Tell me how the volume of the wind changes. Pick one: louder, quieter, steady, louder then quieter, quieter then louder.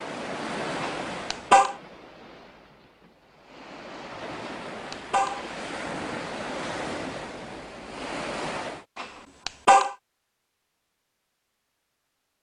quieter then louder.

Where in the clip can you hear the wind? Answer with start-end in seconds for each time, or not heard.
0.0-8.8.